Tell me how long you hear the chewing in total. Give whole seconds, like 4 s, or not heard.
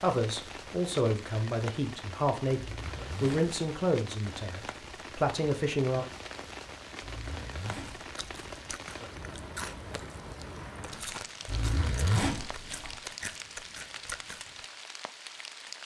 7 s.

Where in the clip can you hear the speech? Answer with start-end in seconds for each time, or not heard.
0.0-6.0.